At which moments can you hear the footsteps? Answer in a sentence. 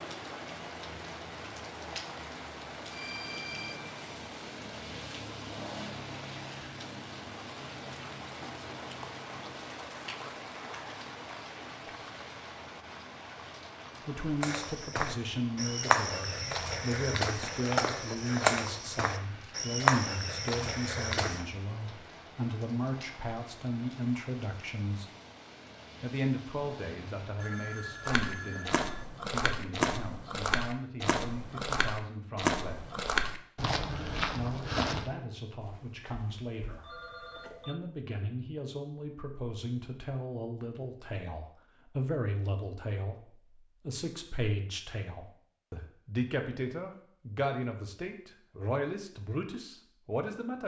The footsteps can be heard from 14.4 to 21.4 s and from 28.1 to 35.1 s.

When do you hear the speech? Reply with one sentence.
The speech can be heard from 14.1 to 25.1 s, from 26.0 to 33.0 s, from 34.3 to 36.9 s and from 37.6 to 50.6 s.